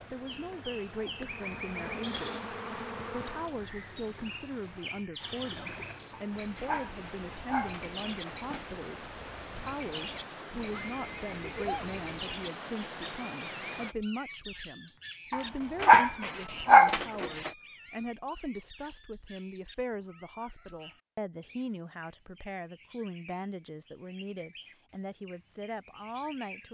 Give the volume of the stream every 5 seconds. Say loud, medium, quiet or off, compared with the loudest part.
medium, loud, loud, off, off, off.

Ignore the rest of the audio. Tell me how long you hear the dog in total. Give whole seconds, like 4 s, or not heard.
5 s.